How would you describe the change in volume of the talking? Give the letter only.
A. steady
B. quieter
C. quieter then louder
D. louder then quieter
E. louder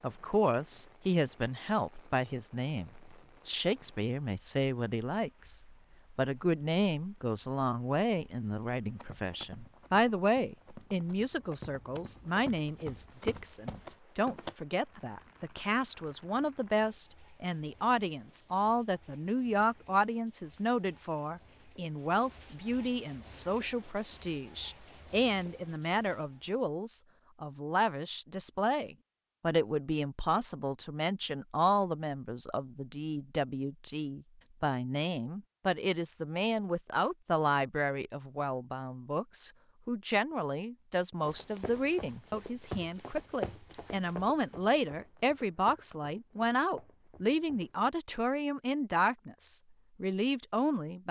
A.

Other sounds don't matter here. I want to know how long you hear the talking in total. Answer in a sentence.
The talking can be heard for 51 seconds in total.